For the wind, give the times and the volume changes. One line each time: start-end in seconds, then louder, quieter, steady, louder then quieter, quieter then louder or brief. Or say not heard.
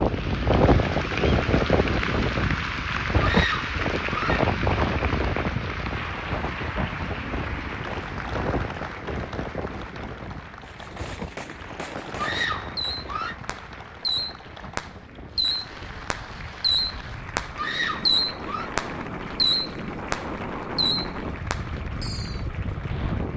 0.0-23.3 quieter then louder.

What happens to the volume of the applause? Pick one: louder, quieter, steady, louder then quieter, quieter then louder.
quieter.